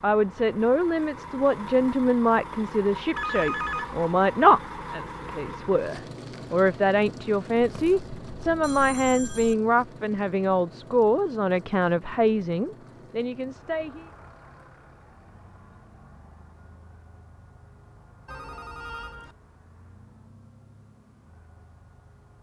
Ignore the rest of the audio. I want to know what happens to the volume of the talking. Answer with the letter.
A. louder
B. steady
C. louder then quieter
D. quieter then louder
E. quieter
B.